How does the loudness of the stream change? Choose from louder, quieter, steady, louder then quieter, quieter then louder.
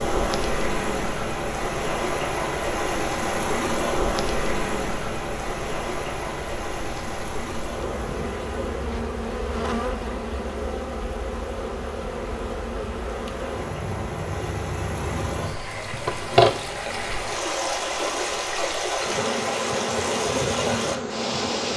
quieter then louder.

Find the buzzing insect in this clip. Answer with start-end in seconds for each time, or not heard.
0.1-21.7.